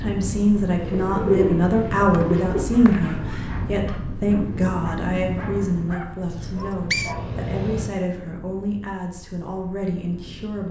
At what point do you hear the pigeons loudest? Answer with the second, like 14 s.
1 s.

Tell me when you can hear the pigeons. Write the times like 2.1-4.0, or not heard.
0.8-2.7.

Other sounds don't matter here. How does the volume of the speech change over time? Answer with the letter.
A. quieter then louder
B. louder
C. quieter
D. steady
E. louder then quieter
C.